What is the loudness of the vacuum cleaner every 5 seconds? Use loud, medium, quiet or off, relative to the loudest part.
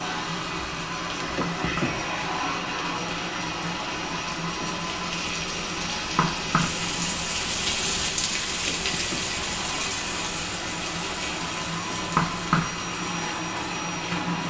loud, medium, loud.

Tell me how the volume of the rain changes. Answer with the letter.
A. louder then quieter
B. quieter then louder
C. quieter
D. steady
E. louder
A.